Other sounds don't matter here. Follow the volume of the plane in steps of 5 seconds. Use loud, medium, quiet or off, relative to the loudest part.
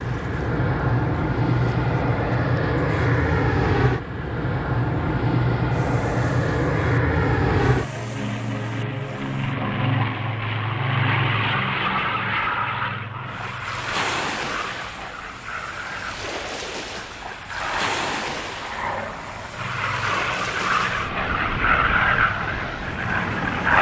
loud, loud, loud, medium, loud.